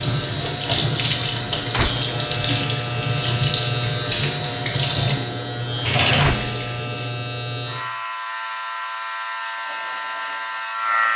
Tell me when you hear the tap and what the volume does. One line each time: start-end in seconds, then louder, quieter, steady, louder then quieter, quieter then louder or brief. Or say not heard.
0.0-7.2 steady.